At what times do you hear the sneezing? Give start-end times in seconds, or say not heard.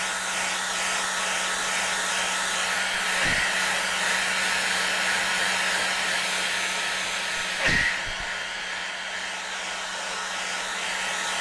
3.1-3.6, 7.4-8.7.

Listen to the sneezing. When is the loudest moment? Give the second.
8 s.